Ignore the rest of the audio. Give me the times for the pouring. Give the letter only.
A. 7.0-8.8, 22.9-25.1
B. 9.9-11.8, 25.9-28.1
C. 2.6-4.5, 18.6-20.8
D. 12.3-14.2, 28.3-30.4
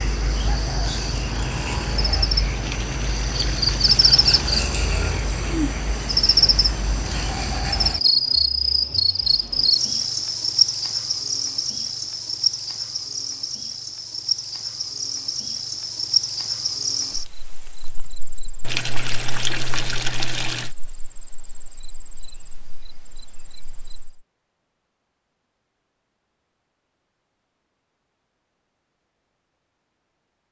C.